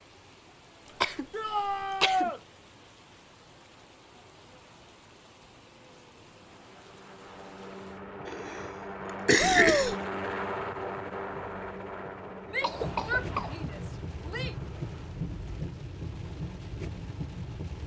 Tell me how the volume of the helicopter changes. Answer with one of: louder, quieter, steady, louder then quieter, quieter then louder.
louder then quieter.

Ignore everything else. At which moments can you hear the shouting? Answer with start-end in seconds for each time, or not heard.
1.3-2.4, 9.3-9.9, 12.5-14.6.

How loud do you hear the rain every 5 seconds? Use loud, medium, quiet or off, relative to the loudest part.
quiet, quiet, loud, loud.